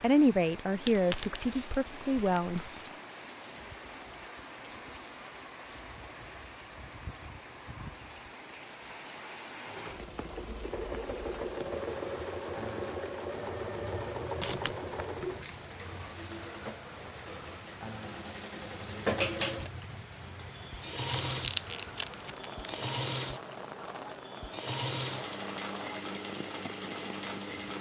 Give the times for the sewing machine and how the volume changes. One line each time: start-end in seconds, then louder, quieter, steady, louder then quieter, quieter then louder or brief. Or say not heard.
9.7-27.7 steady.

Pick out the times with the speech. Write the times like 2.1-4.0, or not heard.
0.0-2.6.